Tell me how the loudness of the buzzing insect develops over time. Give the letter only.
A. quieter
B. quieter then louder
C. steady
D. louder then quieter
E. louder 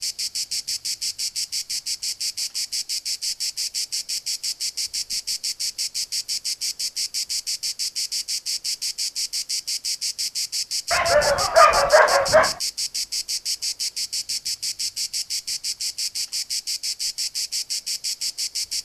C.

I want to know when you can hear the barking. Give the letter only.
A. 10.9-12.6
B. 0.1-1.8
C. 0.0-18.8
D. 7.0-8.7
A.